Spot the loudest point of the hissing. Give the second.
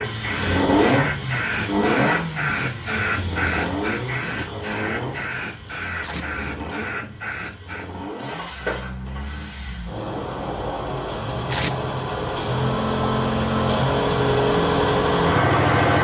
3 s.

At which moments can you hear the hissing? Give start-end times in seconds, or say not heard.
0.0-9.9.